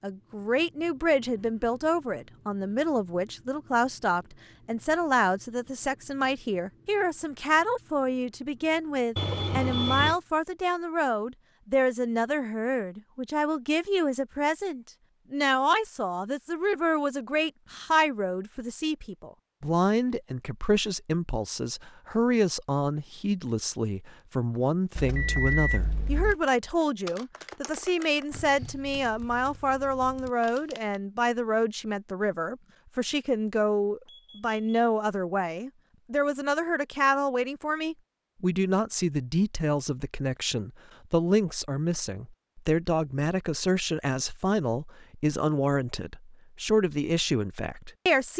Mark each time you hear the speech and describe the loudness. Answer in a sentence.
The speech can be heard from 0.0 to 48.3 s, at a steady volume.